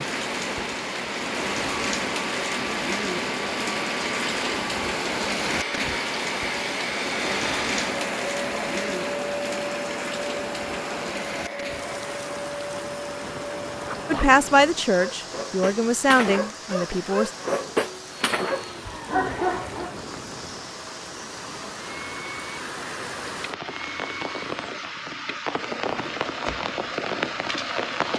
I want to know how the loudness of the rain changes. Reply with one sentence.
The loudness of the rain goes down, then up.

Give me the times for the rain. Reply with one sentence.
You can hear the rain from 0.0 to 28.1 s.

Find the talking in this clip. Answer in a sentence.
You can hear the talking from 14.1 to 17.3 s.